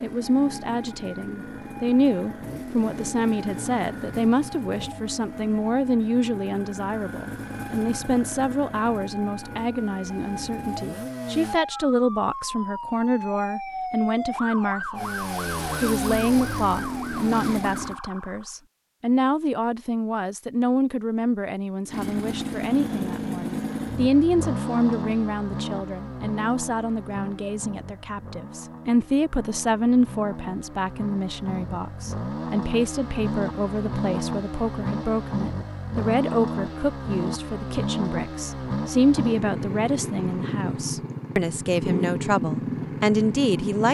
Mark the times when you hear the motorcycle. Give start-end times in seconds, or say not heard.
0.0-11.6, 14.9-18.0, 21.9-43.8.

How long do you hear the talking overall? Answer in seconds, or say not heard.
43 s.